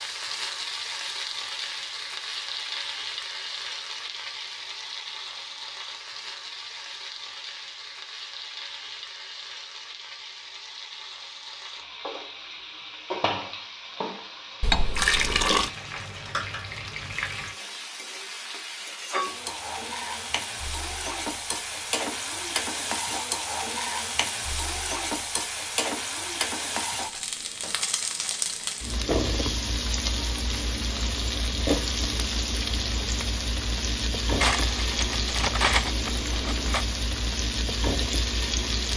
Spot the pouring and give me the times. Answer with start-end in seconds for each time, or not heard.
14.6-15.7.